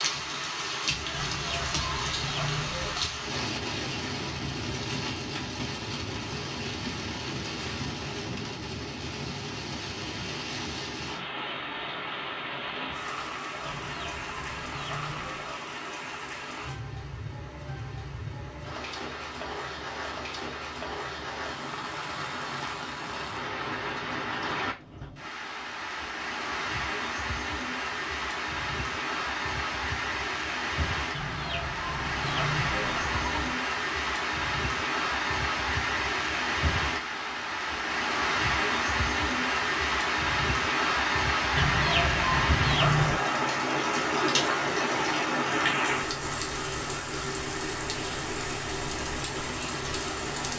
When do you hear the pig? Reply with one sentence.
You can't hear the pig here.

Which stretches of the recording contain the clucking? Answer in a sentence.
The clucking can be heard from 1.1 to 3.0 s, from 13.7 to 15.5 s, from 31.1 to 33.6 s and from 41.5 to 43.2 s.